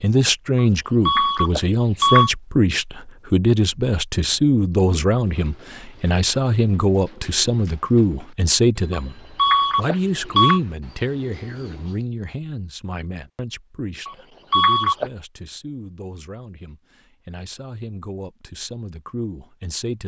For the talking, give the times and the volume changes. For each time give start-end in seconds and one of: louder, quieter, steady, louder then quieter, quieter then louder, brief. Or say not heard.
0.0-20.0 quieter.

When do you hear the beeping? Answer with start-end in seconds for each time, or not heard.
0.6-2.3, 8.9-10.6, 14.1-15.1.